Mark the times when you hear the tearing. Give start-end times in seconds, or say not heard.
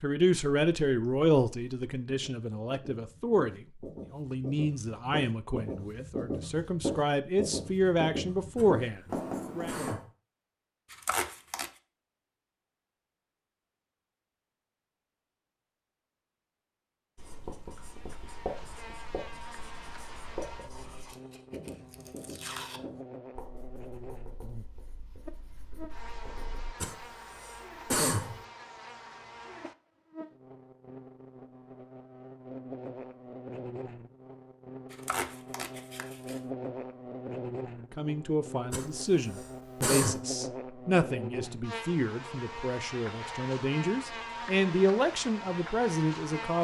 10.9-11.7, 20.8-22.8, 34.9-36.4.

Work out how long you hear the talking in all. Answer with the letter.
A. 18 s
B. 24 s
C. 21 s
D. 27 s
A.